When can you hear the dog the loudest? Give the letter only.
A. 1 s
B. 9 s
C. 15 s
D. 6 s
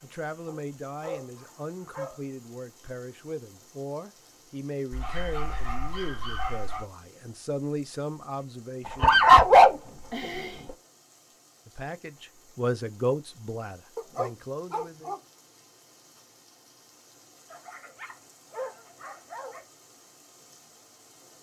B.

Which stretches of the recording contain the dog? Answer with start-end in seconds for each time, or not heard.
0.5-2.2, 4.9-6.8, 8.8-10.7, 13.9-15.2, 17.5-19.6.